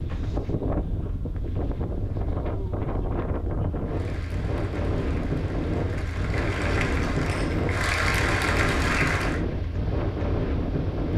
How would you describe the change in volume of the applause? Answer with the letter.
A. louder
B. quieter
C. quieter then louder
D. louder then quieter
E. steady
A.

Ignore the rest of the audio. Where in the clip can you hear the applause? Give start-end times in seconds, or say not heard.
3.8-9.4.